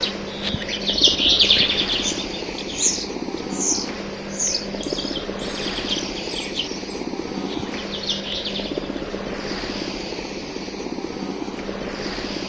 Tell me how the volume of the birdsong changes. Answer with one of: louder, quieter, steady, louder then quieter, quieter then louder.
quieter.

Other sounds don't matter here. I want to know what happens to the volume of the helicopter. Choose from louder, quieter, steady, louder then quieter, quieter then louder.
steady.